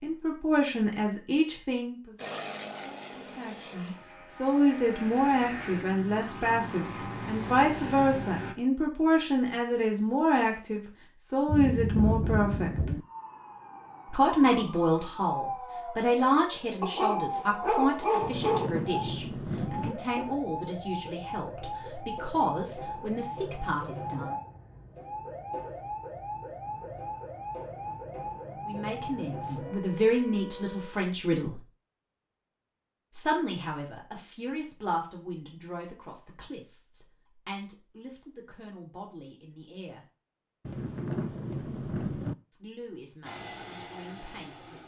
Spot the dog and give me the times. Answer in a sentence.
You can hear the dog from 16.8 to 18.7 s.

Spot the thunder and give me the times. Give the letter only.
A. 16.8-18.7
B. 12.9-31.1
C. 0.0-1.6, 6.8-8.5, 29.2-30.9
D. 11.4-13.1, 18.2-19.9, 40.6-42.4
D.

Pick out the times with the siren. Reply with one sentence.
You can hear the siren from 12.9 to 31.1 s.